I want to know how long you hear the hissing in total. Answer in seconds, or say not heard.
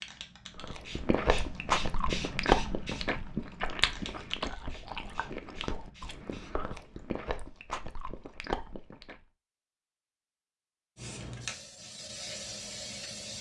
9 s.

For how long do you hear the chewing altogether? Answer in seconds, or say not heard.
9 s.